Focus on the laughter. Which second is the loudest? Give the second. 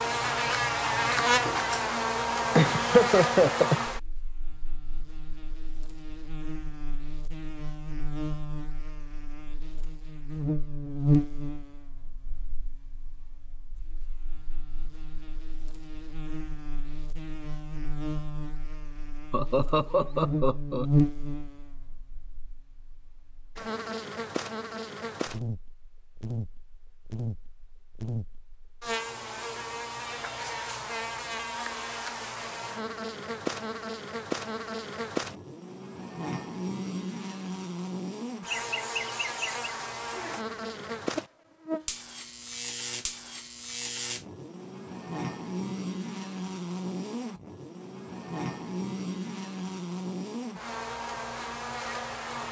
3 s.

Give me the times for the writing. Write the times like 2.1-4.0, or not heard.
not heard.